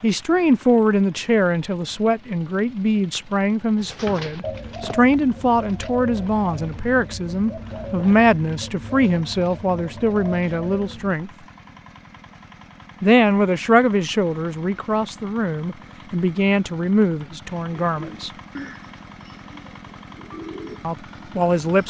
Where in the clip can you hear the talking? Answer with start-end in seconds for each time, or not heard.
0.0-11.3, 13.0-18.3, 20.8-21.8.